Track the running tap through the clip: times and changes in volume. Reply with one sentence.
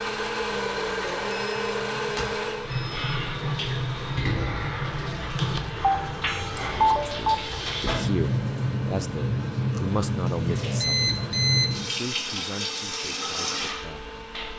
You can hear the running tap from 0.0 to 14.5 s, getting louder.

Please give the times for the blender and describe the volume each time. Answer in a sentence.
The blender can be heard from 0.0 to 14.5 s, getting quieter.